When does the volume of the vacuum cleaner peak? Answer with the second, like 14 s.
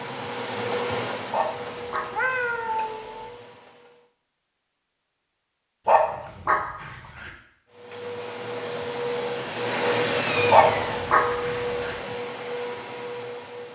10 s.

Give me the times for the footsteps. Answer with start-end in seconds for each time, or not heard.
not heard.